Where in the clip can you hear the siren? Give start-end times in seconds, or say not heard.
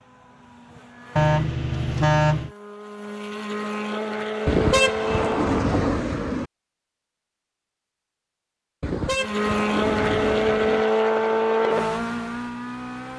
not heard.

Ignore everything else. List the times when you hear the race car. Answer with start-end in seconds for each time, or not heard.
0.0-5.6, 9.2-13.1.